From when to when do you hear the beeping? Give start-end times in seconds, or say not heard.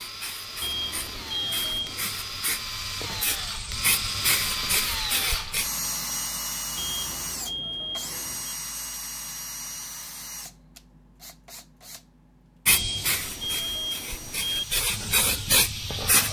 0.6-2.0, 6.8-8.6, 12.7-14.7.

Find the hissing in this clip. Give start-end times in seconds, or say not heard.
0.0-5.7, 12.7-16.2.